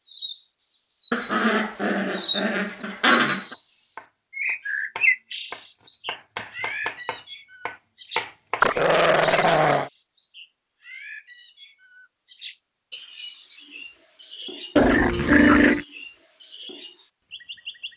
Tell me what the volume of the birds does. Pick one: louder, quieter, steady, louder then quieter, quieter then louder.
quieter.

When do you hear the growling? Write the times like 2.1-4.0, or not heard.
1.1-3.5, 8.6-9.9, 14.8-15.8.